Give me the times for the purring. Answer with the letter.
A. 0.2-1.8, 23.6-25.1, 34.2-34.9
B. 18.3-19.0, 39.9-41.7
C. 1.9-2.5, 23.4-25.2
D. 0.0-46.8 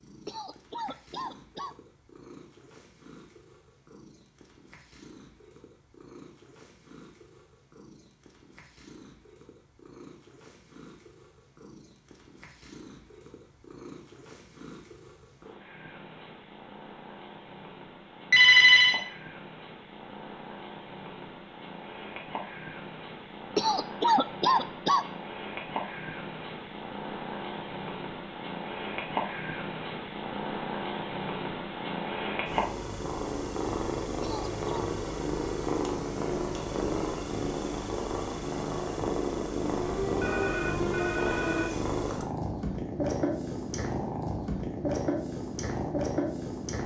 D.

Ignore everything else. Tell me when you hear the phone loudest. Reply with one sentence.
The volume of the phone peaks at 19 seconds.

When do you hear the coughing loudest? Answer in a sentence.
The loudest moment of the coughing is at 24 seconds.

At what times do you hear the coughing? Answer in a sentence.
The coughing can be heard from 0.2 to 1.8 s, from 23.6 to 25.1 s and from 34.2 to 34.9 s.